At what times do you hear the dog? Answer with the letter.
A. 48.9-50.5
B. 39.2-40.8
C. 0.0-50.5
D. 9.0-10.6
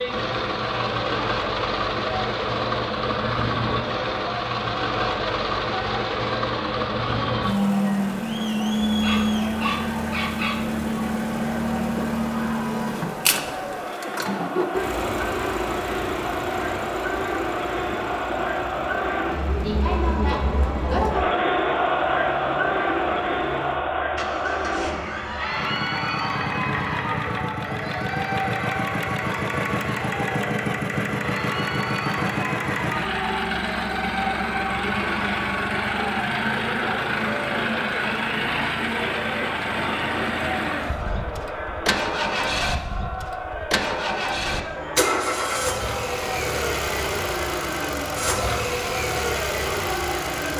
D.